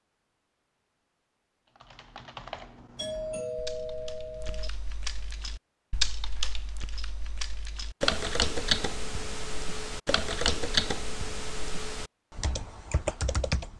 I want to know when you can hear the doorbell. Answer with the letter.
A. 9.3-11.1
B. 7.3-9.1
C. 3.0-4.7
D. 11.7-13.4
C.